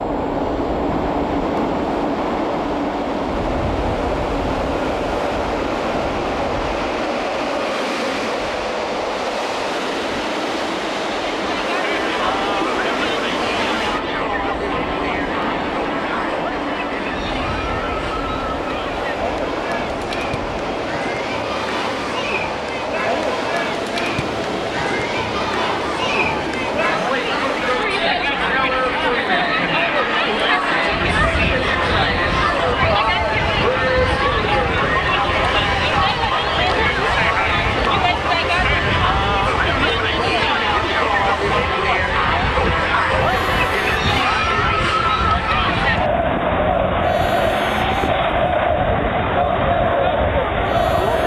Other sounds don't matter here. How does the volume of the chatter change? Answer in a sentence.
The volume of the chatter goes up.